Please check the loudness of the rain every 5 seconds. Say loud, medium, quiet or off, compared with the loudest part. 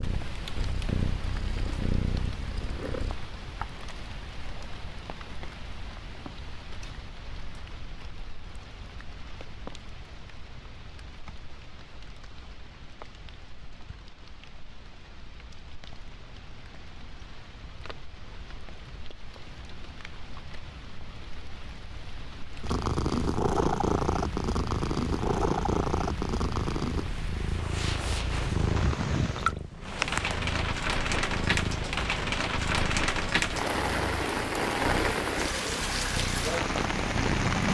quiet, quiet, quiet, quiet, quiet, medium, loud, loud.